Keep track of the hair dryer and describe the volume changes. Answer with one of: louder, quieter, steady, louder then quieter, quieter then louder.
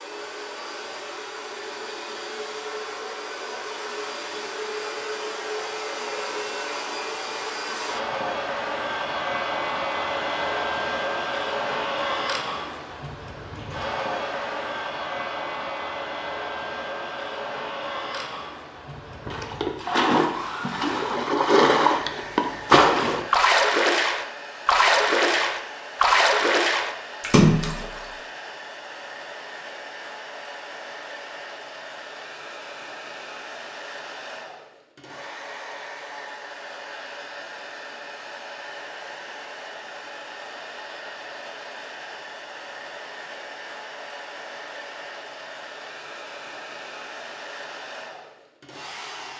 quieter.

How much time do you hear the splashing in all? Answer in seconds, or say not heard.
9 s.